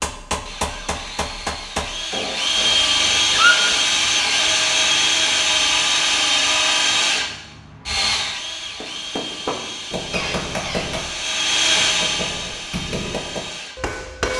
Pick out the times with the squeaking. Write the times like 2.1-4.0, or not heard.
3.3-3.7, 10.1-10.9.